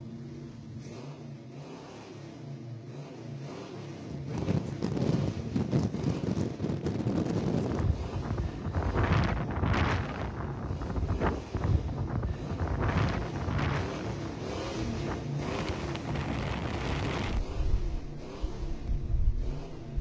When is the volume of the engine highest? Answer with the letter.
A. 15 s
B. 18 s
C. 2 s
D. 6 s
A.